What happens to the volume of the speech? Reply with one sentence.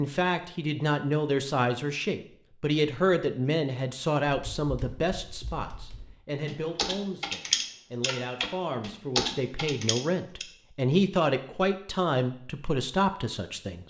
The volume of the speech goes down, then up.